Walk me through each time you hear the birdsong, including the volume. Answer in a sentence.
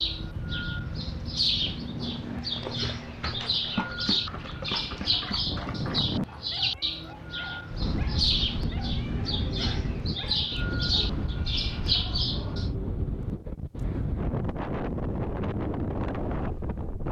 The birdsong can be heard from 0.0 to 12.7 s, at a steady volume.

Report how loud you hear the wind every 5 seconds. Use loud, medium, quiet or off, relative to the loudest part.
medium, loud, loud, loud.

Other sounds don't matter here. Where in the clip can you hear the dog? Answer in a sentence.
The dog can be heard from 2.5 to 11.2 s.